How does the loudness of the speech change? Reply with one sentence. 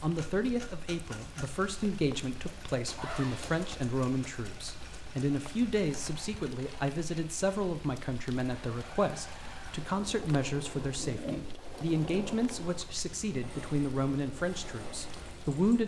The volume of the speech stays about the same.